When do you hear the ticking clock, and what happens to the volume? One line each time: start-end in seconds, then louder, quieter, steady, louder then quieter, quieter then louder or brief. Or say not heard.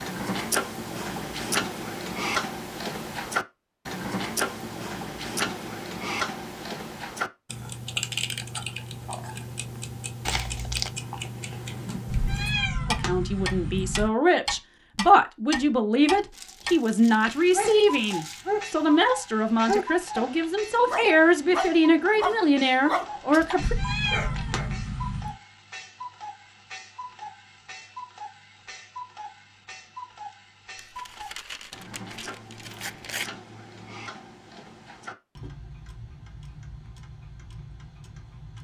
0.0-38.5 quieter.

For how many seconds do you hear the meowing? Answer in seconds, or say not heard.
4 s.